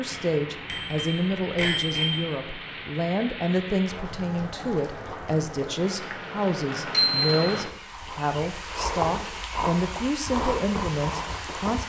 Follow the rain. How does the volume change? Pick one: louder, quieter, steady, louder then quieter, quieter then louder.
louder.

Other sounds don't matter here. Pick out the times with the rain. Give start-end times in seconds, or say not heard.
0.0-11.8.